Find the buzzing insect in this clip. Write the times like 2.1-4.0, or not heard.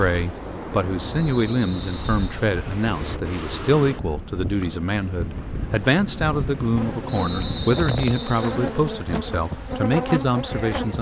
5.6-10.9.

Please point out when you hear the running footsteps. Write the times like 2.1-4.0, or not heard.
not heard.